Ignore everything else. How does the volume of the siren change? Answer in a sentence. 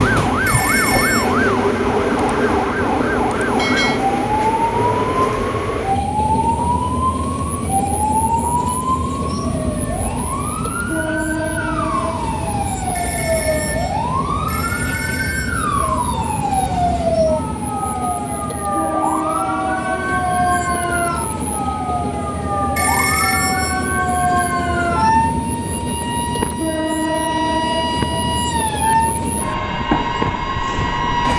The volume of the siren stays about the same.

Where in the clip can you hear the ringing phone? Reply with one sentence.
You can hear the ringing phone from 0.5 to 1.4 s, from 12.9 to 15.7 s and from 22.8 to 23.9 s.